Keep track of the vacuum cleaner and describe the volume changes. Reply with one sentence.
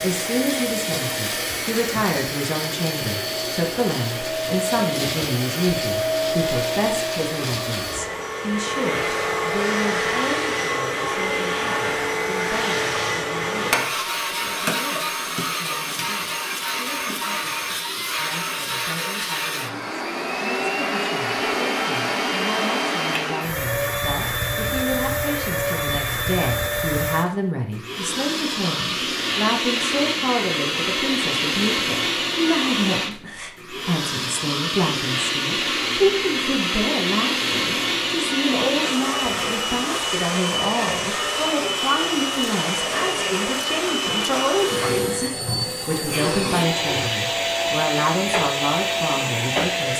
The volume of the vacuum cleaner stays about the same.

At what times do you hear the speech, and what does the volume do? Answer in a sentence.
You can hear the speech from 0.0 to 49.9 s, getting quieter then louder.